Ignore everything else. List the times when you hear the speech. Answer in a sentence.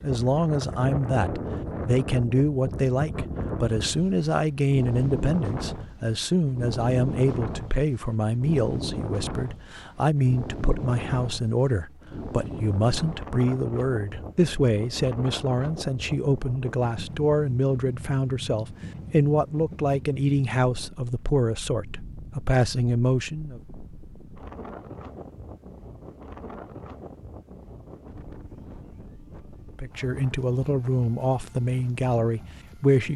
You can hear the speech from 0.0 to 23.6 s and from 29.8 to 33.1 s.